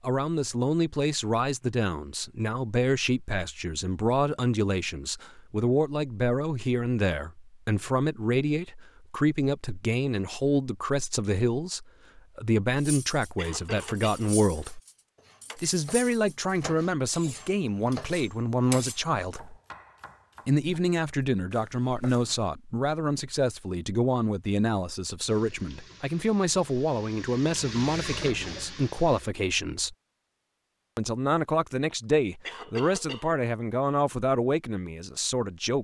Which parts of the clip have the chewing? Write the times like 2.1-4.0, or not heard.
not heard.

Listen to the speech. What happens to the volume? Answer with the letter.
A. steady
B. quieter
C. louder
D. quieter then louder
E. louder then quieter
A.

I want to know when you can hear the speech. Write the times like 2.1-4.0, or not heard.
0.0-14.8, 15.6-19.6, 20.4-29.9, 30.9-35.7.